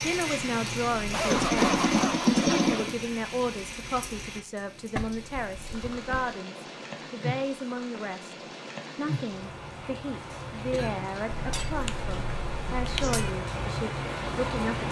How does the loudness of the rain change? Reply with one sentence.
The loudness of the rain goes down, then up.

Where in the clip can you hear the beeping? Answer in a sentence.
You can't hear the beeping here.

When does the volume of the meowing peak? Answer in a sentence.
The volume of the meowing peaks at 2 seconds.